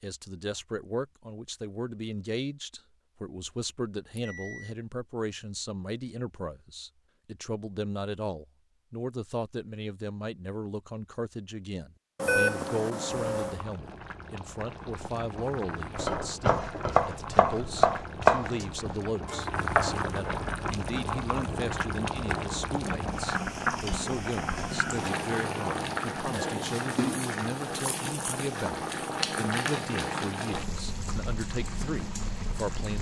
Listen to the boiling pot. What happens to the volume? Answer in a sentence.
The loudness of the boiling pot goes up.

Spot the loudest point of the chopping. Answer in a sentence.
The volume of the chopping peaks at 18 seconds.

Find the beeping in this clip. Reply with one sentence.
You can hear the beeping from 4.2 to 4.7 s, from 12.2 to 13.6 s and from 24.6 to 26.4 s.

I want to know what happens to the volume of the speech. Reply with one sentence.
The loudness of the speech stays about the same.